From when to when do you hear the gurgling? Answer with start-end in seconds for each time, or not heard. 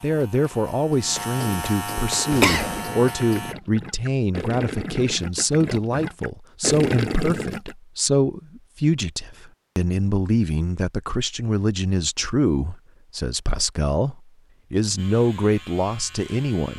2.1-7.8.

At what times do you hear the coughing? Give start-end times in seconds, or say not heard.
2.3-2.9.